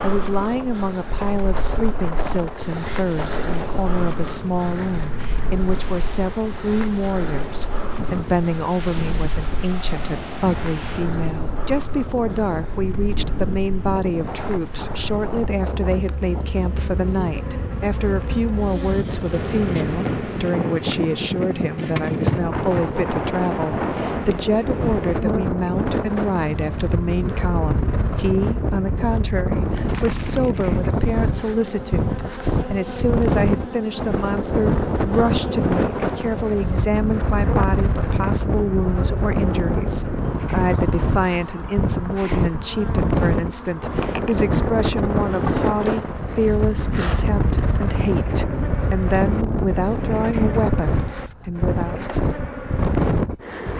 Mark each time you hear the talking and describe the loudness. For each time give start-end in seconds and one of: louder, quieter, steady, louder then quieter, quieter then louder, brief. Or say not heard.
0.0-52.1 steady.